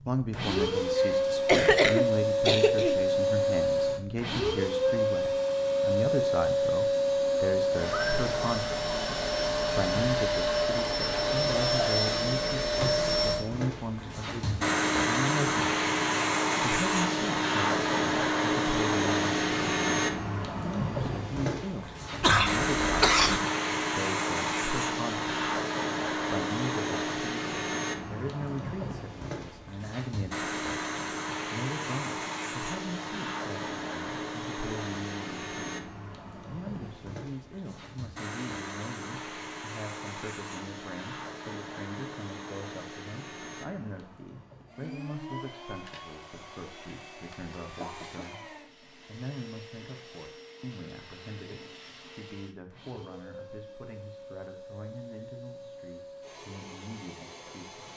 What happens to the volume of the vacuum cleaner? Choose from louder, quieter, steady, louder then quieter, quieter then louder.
quieter.